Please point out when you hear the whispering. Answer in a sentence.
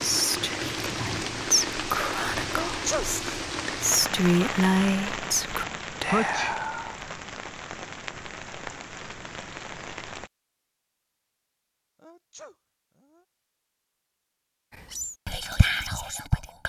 The whispering can be heard from 0.0 to 7.0 s and from 14.8 to 16.6 s.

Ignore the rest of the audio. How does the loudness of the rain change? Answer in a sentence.
The loudness of the rain goes down.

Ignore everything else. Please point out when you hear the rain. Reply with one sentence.
You can hear the rain from 0.0 to 10.3 s.